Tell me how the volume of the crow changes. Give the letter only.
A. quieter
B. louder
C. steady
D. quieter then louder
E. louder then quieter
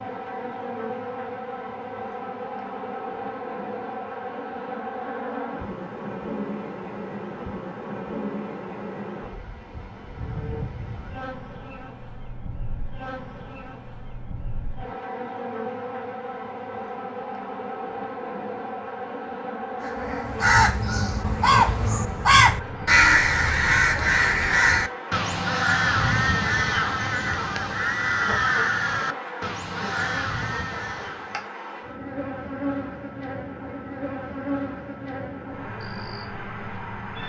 A.